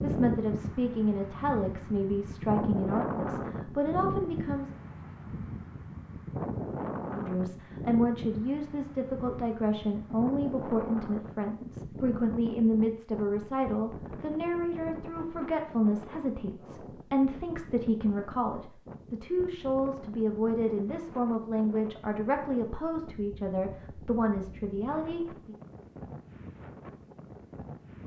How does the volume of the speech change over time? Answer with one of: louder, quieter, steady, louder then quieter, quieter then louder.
steady.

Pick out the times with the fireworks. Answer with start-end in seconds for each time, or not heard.
not heard.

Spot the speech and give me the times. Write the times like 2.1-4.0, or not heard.
0.0-4.7, 7.1-25.6.